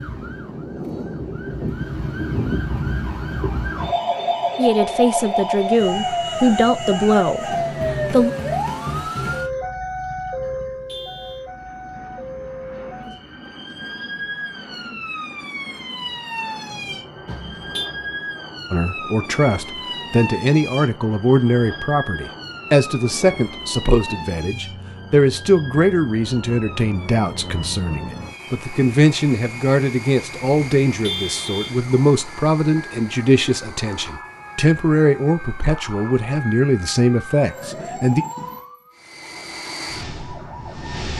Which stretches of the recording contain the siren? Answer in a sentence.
You can hear the siren from 0.0 to 41.0 s.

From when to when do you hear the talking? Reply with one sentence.
The talking can be heard from 4.5 to 8.3 s and from 18.7 to 38.2 s.